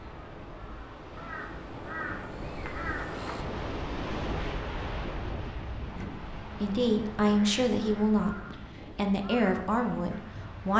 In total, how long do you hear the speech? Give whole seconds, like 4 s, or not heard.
5 s.